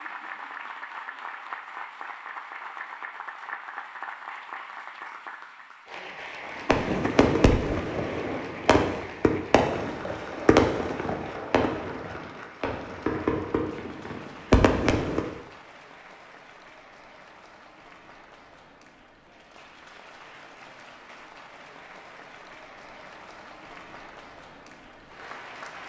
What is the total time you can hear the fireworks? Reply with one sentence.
You can hear the fireworks for 9 seconds altogether.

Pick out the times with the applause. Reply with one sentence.
You can hear the applause from 0.0 to 25.8 s.